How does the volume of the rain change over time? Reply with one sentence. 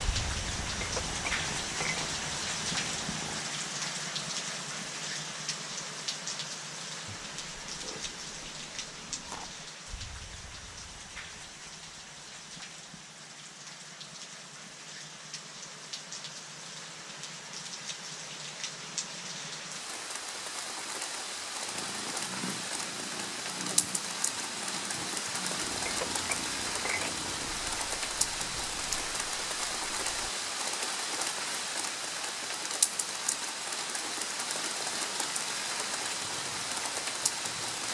The volume of the rain goes down, then up.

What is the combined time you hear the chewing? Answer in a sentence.
The chewing can be heard for 3 seconds in total.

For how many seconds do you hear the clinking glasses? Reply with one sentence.
You can hear the clinking glasses for 3 seconds altogether.